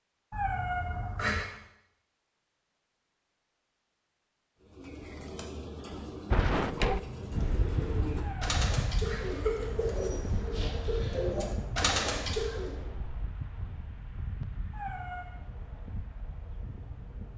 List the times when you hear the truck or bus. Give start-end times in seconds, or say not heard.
not heard.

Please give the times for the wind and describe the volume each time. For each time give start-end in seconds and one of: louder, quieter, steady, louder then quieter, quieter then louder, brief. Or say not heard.
6.3-17.3 quieter.